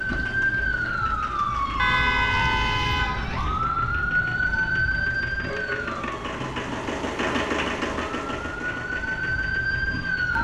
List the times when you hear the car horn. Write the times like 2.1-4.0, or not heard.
1.8-3.2, 5.5-6.9.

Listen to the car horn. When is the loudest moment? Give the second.
2 s.